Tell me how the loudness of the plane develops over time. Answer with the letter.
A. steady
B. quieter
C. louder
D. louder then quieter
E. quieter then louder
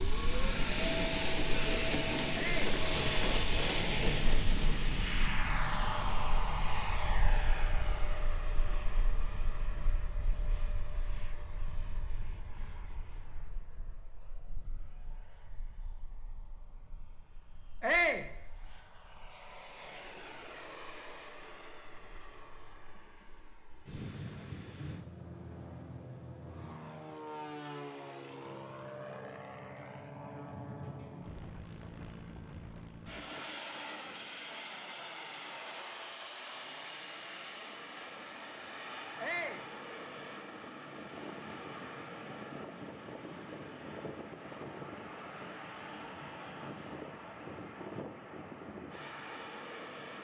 E.